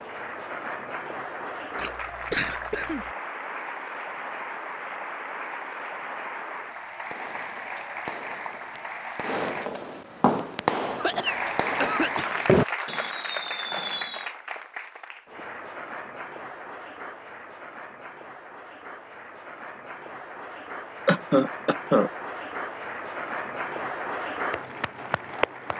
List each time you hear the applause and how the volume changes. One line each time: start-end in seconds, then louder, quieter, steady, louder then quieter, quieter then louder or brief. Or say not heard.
0.0-9.7 steady
11.2-25.7 quieter then louder.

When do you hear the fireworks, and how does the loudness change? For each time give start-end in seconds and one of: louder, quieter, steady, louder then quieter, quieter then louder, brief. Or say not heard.
7.0-14.2 louder.